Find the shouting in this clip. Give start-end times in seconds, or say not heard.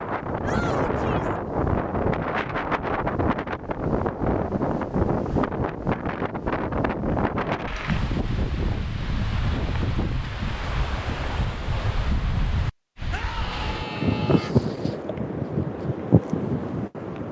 0.4-1.4, 13.1-14.5.